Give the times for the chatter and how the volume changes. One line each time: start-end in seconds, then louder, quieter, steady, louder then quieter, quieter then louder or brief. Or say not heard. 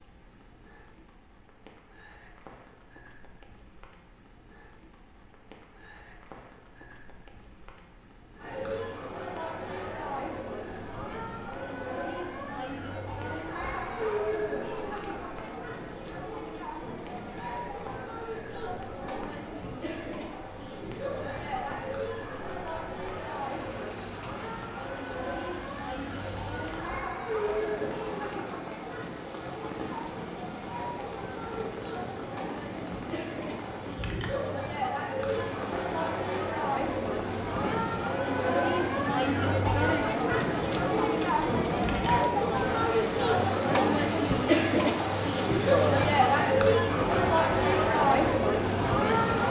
8.3-49.4 louder.